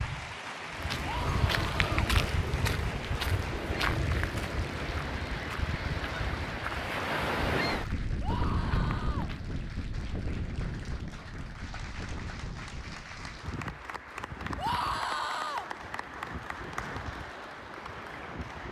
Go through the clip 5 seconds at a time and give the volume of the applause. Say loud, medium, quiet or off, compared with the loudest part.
loud, medium, loud, loud.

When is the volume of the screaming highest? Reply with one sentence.
The volume of the screaming peaks at 15 seconds.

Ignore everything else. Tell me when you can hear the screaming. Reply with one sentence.
The screaming can be heard from 1.0 to 1.9 s, from 8.2 to 9.3 s and from 14.6 to 15.7 s.